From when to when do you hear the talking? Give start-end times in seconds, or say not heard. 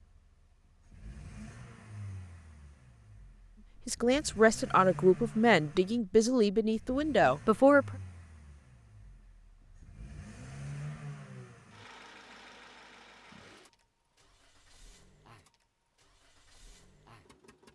3.9-7.8.